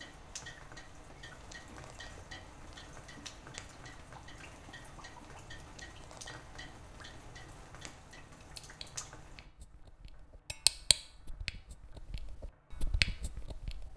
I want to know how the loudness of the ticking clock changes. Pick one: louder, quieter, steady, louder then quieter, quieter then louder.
louder.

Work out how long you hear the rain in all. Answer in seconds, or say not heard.
14 s.